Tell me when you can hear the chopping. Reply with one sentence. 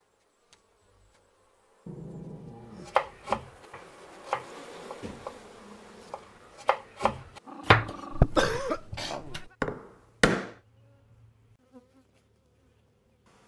The chopping can be heard from 2.9 to 10.5 s.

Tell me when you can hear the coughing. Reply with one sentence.
The coughing can be heard from 8.1 to 9.4 s.